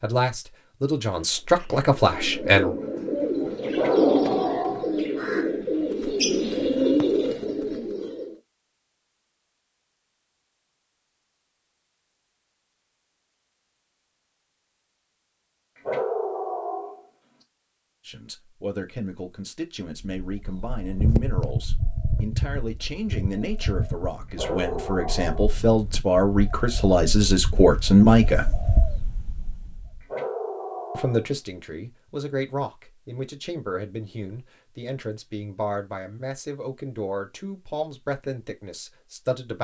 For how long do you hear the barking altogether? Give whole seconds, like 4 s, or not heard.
5 s.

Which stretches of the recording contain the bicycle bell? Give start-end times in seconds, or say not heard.
not heard.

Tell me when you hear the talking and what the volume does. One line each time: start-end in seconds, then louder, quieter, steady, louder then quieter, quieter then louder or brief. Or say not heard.
0.0-2.8 brief
18.1-28.5 louder
30.9-39.5 steady.